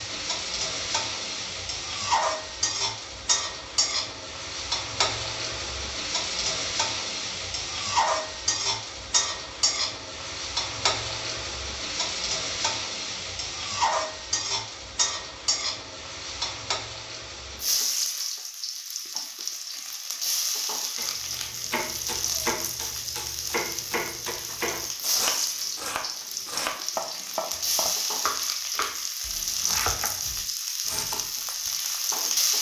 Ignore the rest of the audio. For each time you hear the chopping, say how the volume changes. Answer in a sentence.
You can hear the chopping from 20.9 to 31.9 s, at a steady volume.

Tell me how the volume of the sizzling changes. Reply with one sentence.
The loudness of the sizzling stays about the same.